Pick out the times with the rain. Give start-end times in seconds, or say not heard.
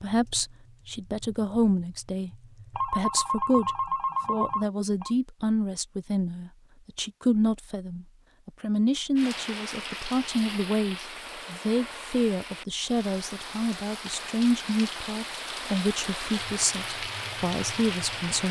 9.2-18.4.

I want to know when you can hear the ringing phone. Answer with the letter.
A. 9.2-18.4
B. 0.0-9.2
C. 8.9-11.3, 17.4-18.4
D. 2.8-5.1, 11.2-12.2
D.